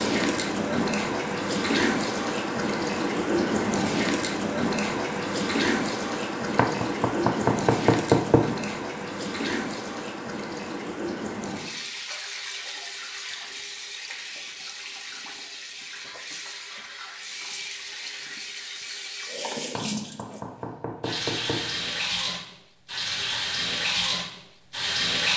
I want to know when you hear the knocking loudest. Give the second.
8 s.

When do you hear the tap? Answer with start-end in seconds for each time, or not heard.
0.0-25.3.